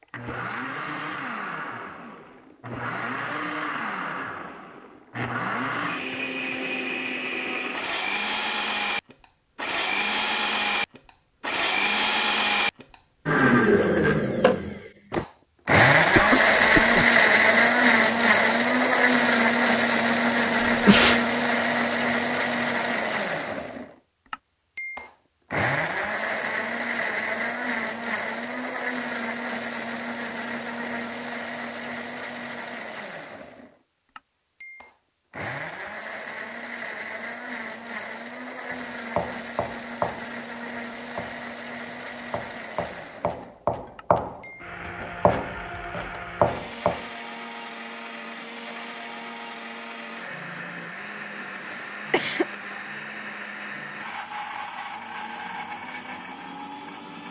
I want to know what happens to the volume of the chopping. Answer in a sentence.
The volume of the chopping goes down, then up.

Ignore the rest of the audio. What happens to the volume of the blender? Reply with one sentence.
The loudness of the blender goes up, then down.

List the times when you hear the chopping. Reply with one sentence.
You can hear the chopping from 38.6 to 47.0 s.